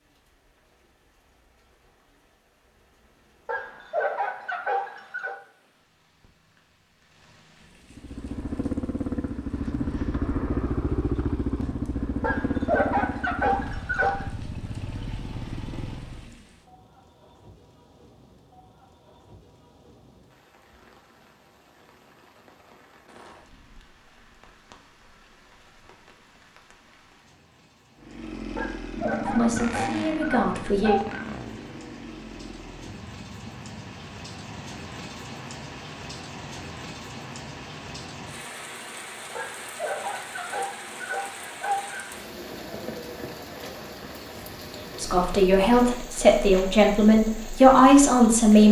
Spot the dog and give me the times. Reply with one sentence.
The dog can be heard from 3.5 to 5.3 s, from 12.2 to 14.3 s, from 28.6 to 31.2 s and from 39.4 to 42.0 s.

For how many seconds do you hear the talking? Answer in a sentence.
You can hear the talking for 5 seconds altogether.